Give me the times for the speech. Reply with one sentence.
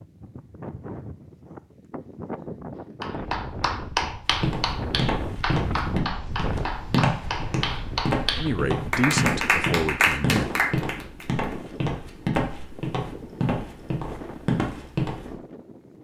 The speech can be heard from 8.3 to 10.6 s.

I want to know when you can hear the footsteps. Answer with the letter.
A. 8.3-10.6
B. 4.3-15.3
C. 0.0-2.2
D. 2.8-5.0
B.